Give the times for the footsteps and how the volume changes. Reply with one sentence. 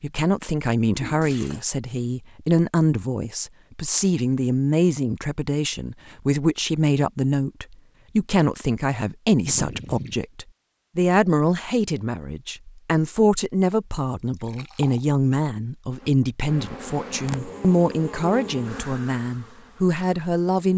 The footsteps can't be heard in this clip.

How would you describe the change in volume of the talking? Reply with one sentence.
The volume of the talking stays about the same.